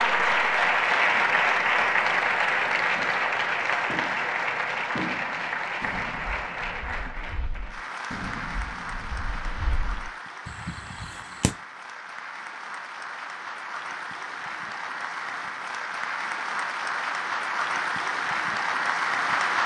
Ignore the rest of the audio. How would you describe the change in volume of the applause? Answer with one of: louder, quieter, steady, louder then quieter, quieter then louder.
quieter then louder.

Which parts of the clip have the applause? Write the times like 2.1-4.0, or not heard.
0.0-19.6.